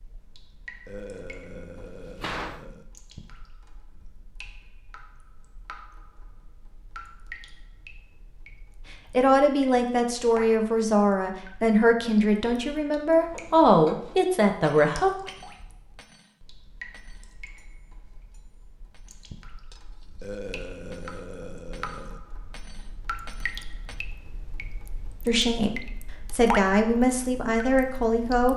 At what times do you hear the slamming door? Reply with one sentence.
You can hear the slamming door from 1.8 to 2.6 s.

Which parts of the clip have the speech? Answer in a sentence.
The speech can be heard from 9.1 to 15.1 s and from 25.2 to 28.5 s.